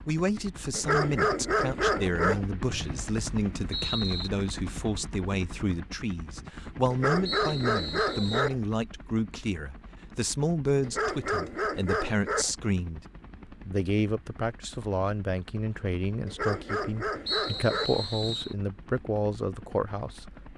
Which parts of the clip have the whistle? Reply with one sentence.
The whistle can be heard from 2.6 to 4.3 s, from 7.2 to 8.6 s and from 17.2 to 18.6 s.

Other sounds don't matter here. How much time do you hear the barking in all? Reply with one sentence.
The barking can be heard for 7 seconds in total.